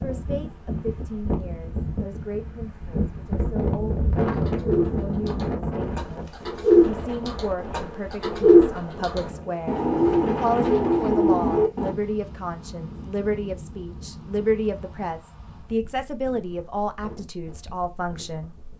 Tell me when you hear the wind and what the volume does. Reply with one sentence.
You can hear the wind from 0.0 to 18.7 s, getting quieter.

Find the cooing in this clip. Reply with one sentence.
You can hear the cooing from 4.3 to 11.9 s.